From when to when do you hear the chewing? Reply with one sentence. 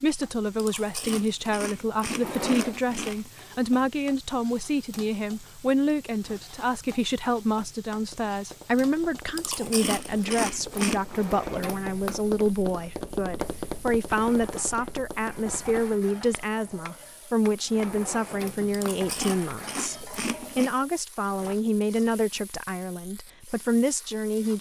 The chewing can be heard from 0.6 to 3.4 s, from 9.3 to 11.0 s and from 18.7 to 20.7 s.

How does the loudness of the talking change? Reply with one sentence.
The loudness of the talking stays about the same.